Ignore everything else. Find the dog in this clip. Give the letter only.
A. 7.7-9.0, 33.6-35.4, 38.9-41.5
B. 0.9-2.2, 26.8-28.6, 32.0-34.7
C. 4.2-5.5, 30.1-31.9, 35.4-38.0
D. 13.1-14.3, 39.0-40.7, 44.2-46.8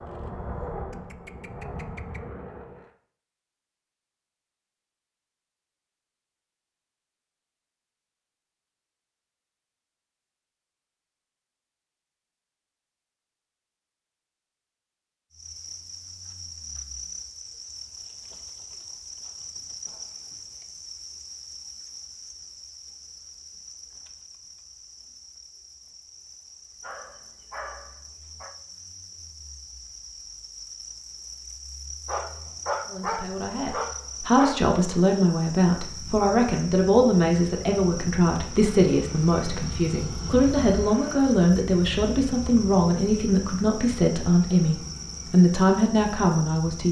B.